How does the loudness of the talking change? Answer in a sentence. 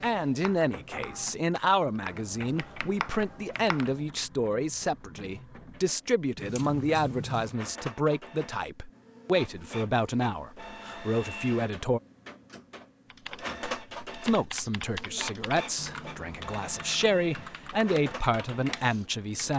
The volume of the talking stays about the same.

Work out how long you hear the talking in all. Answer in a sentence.
The talking can be heard for 17 seconds in total.